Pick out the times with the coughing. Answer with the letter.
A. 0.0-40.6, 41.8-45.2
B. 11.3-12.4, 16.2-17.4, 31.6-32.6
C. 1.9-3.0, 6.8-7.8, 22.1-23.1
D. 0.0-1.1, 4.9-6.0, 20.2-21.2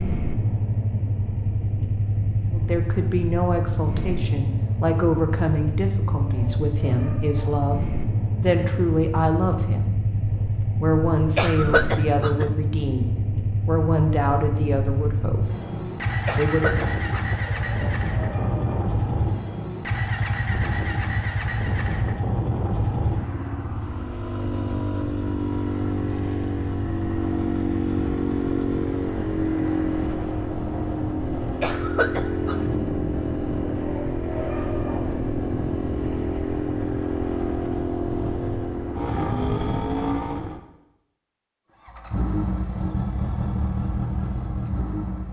B.